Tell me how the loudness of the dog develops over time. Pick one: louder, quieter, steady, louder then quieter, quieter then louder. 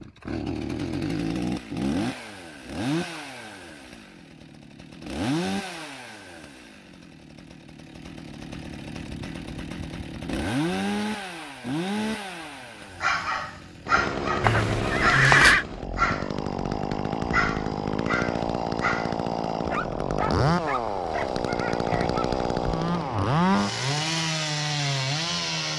quieter.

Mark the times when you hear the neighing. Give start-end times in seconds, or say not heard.
14.4-15.7.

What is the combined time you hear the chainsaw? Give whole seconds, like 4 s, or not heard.
26 s.